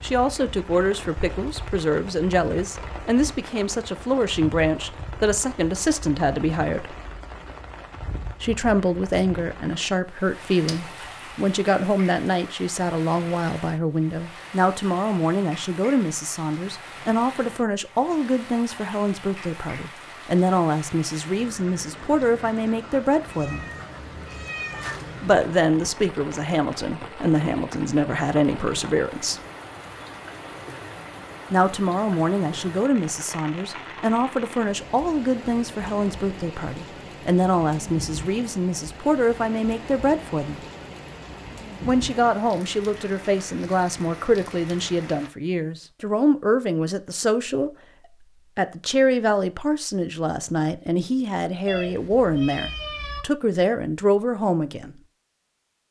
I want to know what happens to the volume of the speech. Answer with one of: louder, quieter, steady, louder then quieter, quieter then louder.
steady.